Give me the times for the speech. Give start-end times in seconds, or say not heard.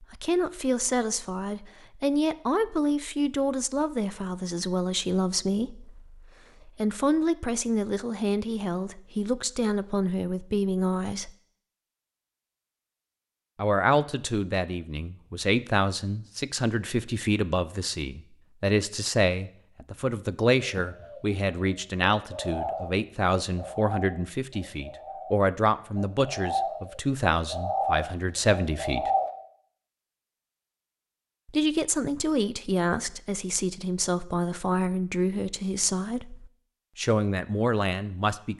0.0-11.3, 13.6-29.1, 31.4-38.5.